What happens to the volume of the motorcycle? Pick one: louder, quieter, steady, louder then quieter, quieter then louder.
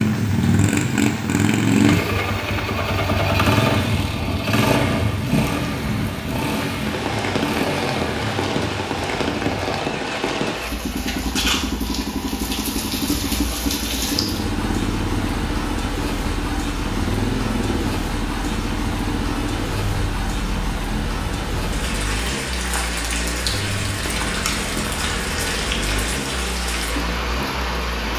quieter.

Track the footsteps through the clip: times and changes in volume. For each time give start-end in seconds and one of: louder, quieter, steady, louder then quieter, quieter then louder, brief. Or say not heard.
not heard.